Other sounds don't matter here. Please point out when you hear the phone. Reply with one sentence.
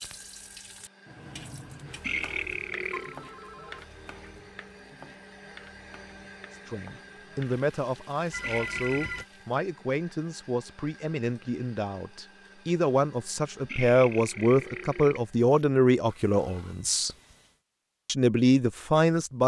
You can hear the phone from 2.9 to 3.8 s, from 8.3 to 9.2 s and from 16.1 to 17.6 s.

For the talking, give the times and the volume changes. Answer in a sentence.
The talking can be heard from 6.5 to 17.1 s, getting louder; and briefly from 18.1 to 19.4 s.